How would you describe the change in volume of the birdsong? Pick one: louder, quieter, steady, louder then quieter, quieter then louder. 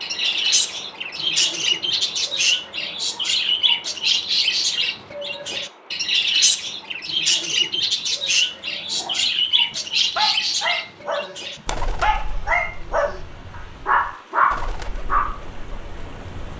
quieter.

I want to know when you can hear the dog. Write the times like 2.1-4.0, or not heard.
8.9-15.3.